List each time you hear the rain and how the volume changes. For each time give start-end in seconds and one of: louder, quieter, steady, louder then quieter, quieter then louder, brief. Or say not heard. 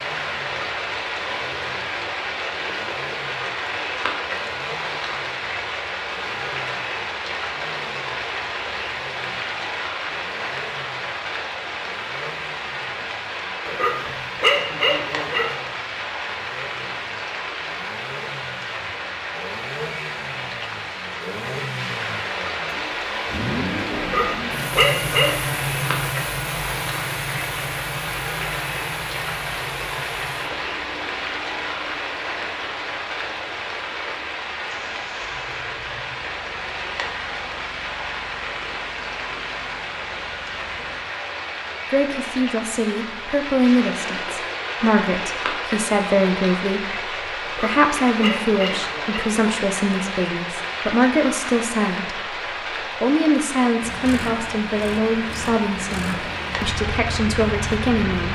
0.0-58.3 steady.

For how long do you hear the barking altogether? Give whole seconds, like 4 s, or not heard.
5 s.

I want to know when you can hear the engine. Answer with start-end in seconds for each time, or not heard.
0.0-41.0, 53.8-58.3.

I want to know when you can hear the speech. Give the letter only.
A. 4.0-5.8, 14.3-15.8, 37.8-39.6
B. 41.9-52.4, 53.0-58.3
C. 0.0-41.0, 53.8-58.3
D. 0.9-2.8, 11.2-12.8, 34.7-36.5
B.